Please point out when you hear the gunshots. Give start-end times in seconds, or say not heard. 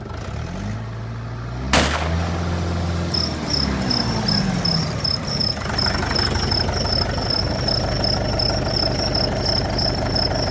1.7-2.9.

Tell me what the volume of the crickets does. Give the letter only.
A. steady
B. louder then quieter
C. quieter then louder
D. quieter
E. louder
A.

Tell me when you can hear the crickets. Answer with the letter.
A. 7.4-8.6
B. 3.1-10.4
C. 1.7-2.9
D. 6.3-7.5
B.